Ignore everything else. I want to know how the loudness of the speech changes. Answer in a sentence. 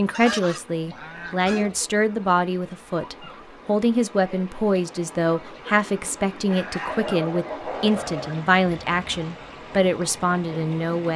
The volume of the speech stays about the same.